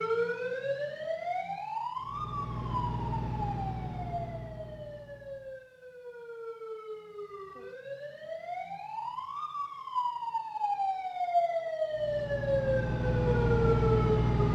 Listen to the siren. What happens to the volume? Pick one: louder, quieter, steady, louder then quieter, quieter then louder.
quieter then louder.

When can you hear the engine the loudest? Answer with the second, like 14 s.
14 s.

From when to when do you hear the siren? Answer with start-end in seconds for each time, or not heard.
0.0-14.4.